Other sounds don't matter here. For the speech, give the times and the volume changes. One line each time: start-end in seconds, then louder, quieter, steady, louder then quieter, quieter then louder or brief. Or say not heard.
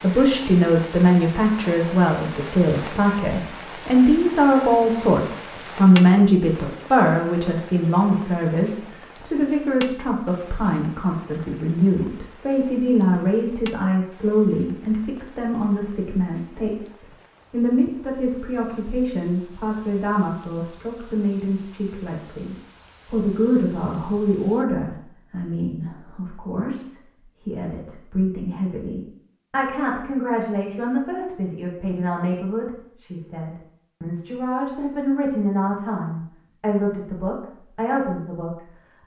0.0-38.5 quieter.